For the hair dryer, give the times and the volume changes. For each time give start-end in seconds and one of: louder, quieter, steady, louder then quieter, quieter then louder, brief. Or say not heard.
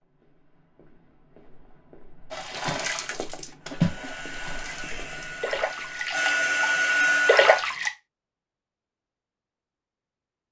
3.6-7.7 louder.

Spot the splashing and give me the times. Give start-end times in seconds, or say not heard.
2.3-7.9.